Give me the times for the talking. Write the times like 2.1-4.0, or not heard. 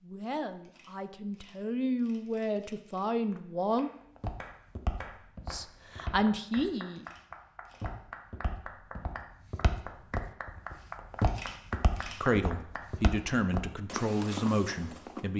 0.0-3.9, 5.5-7.0, 12.2-15.3.